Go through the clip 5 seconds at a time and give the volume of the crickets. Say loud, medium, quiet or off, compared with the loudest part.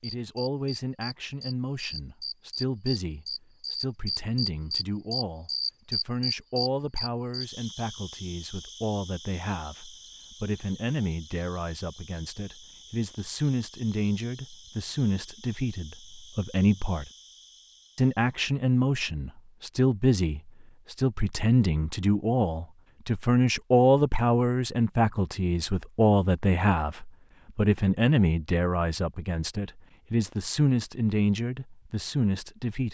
loud, loud, quiet, quiet, off, off, off.